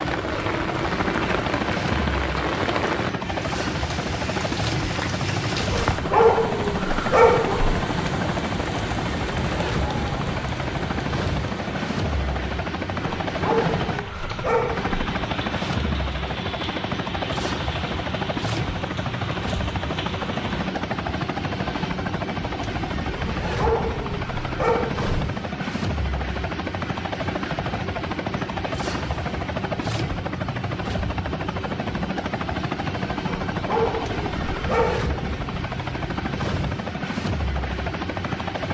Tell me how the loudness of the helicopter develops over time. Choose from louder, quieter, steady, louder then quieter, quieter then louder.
steady.